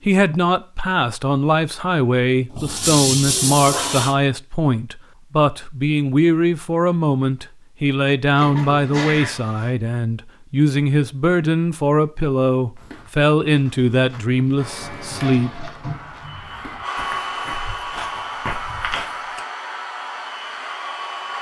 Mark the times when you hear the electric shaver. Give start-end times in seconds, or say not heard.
not heard.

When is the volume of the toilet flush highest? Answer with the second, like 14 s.
3 s.